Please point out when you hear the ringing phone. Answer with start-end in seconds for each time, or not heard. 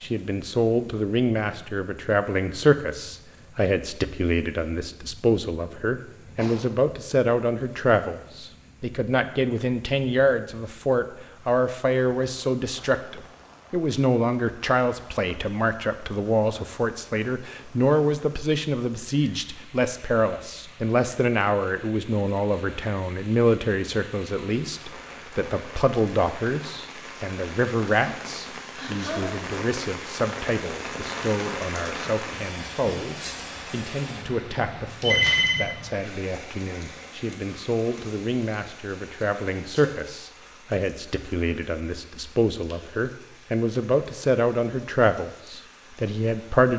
35.0-35.6.